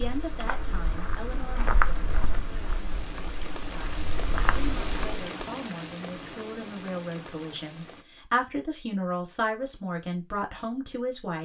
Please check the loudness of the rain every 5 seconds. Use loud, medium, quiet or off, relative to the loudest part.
loud, loud, off.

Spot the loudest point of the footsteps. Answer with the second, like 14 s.
2 s.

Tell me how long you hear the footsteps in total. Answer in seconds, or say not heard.
5 s.